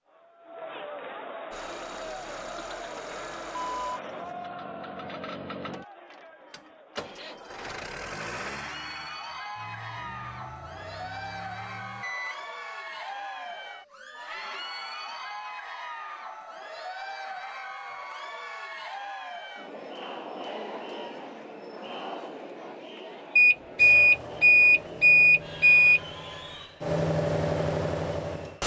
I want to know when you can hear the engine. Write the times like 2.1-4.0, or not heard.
1.5-12.1, 23.8-28.6.